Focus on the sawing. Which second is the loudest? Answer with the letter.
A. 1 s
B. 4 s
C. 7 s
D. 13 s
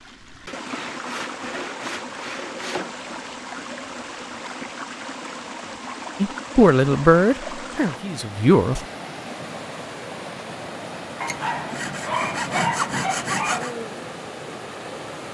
D.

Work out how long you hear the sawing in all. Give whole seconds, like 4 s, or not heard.
5 s.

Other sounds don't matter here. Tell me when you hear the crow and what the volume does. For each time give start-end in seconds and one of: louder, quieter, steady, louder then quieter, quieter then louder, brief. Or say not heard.
not heard.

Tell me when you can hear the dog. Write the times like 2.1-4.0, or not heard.
11.2-13.7.